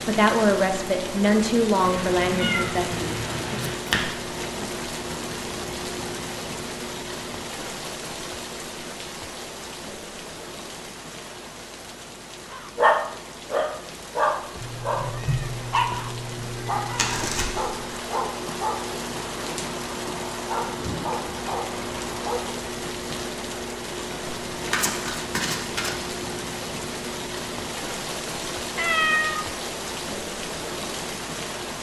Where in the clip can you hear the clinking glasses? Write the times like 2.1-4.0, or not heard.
not heard.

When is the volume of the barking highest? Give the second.
13 s.